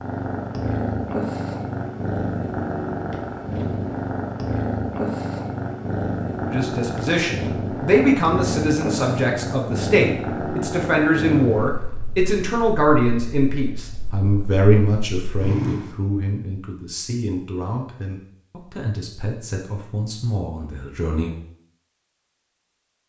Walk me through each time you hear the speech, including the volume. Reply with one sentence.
The speech can be heard from 6.5 to 21.4 s, getting quieter.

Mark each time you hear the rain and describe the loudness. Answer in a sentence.
You can't hear the rain here.